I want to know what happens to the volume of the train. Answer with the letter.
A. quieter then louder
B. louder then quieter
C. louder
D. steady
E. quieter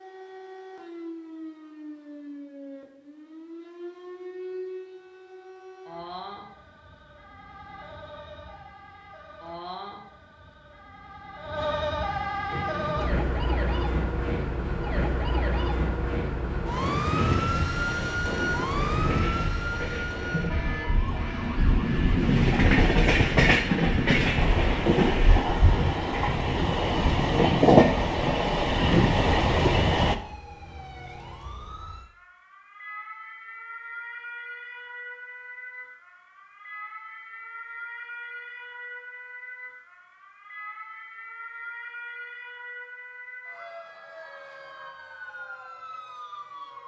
C.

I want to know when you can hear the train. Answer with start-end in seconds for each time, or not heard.
12.5-30.1.